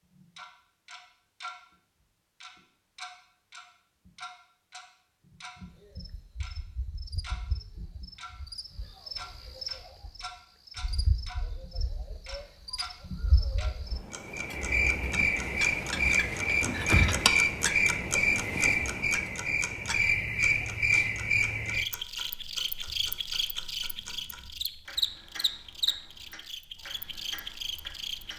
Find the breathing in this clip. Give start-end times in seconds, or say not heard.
not heard.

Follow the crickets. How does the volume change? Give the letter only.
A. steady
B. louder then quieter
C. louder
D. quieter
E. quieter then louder
B.